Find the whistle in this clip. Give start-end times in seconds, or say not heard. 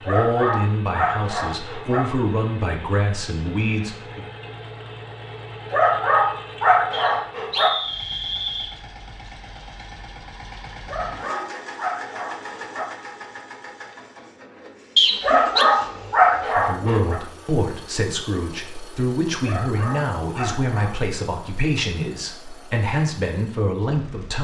6.9-8.8, 14.9-15.7.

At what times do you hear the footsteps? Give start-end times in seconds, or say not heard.
not heard.